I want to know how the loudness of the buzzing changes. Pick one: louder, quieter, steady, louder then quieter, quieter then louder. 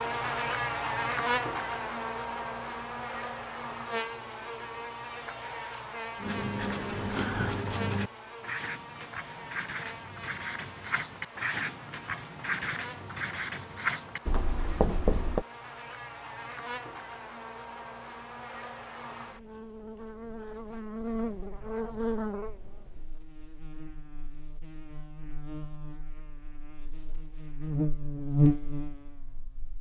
quieter then louder.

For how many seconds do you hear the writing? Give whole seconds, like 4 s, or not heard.
9 s.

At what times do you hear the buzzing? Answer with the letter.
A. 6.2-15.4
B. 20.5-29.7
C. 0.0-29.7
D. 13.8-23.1
C.